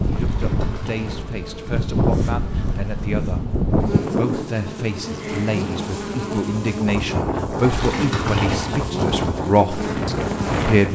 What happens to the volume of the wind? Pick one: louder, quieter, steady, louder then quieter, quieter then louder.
quieter then louder.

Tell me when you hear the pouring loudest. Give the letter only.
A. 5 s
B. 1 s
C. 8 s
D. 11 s
C.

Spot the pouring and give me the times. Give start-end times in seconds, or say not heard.
0.1-1.2, 7.6-8.8.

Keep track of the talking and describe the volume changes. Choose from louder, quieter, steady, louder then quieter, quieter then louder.
louder.